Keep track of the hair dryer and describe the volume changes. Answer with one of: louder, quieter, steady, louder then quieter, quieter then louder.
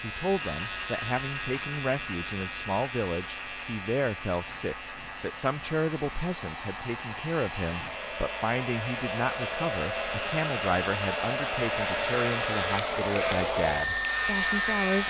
louder.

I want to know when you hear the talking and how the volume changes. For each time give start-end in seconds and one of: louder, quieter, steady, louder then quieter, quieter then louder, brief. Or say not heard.
0.0-15.0 steady.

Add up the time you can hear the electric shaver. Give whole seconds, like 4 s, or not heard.
15 s.